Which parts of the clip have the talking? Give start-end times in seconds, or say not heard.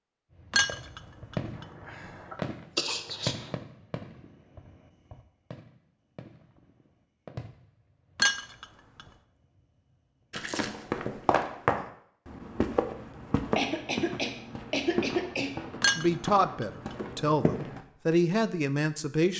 15.9-19.3.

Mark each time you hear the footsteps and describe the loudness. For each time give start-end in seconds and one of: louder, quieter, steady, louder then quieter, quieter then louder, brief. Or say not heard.
10.5-17.8 quieter.